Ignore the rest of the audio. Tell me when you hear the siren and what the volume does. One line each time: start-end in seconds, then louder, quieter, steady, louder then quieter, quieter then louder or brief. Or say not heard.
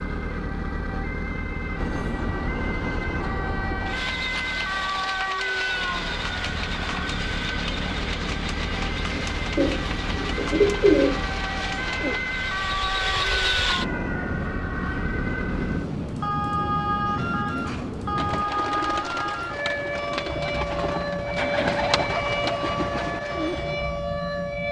0.0-24.6 steady.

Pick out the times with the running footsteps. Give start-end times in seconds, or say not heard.
not heard.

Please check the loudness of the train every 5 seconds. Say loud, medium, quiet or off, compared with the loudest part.
loud, loud, loud, loud, off.